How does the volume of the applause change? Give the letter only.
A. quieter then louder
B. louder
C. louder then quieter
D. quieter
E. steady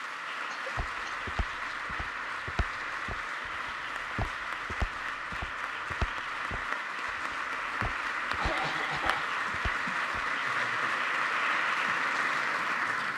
B.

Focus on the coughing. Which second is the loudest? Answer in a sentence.
The loudest moment of the coughing is at 9 seconds.